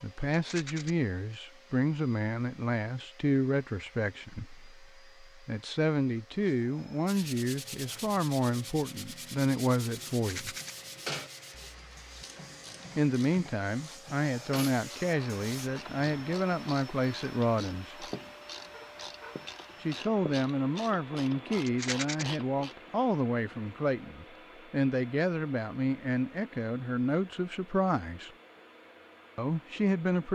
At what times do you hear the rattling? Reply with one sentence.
You can hear the rattling from 0.3 to 0.9 s, from 10.1 to 10.8 s and from 21.6 to 22.2 s.